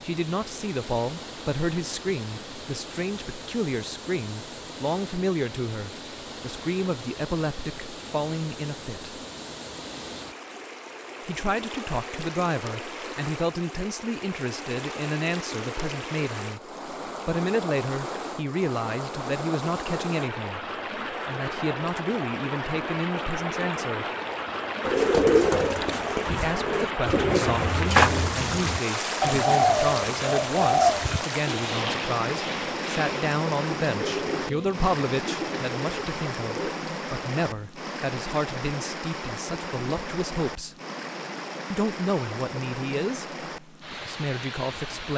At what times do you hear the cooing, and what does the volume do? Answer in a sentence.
The cooing can be heard from 24.8 to 36.8 s, getting quieter.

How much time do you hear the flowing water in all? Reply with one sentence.
You can hear the flowing water for 45 seconds altogether.